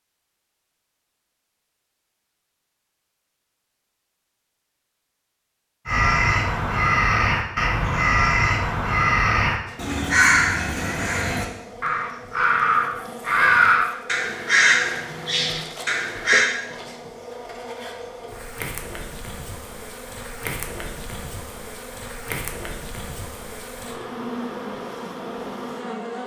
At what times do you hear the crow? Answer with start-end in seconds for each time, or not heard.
5.8-16.5.